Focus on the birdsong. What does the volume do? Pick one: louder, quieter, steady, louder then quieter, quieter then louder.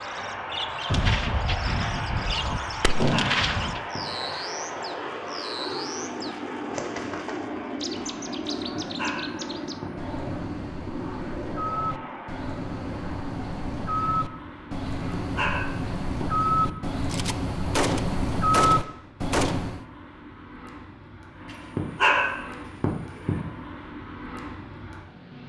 louder.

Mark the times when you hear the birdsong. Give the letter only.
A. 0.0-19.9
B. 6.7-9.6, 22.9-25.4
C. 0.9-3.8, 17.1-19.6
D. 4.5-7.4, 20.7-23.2
A.